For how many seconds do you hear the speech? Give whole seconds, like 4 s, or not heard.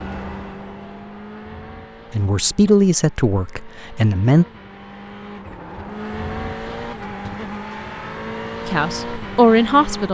4 s.